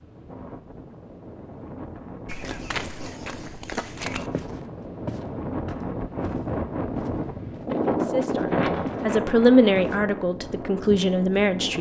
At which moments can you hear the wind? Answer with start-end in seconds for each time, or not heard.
0.0-11.7.